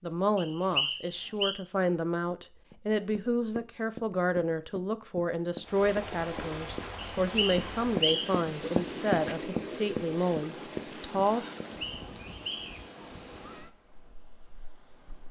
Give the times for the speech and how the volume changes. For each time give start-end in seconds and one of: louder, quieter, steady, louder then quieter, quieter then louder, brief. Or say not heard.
0.0-11.4 steady.